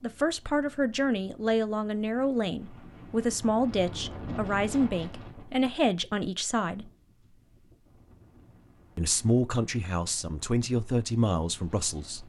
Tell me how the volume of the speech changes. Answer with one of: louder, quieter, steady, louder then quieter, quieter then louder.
steady.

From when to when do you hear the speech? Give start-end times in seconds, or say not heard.
0.0-6.9, 8.9-12.2.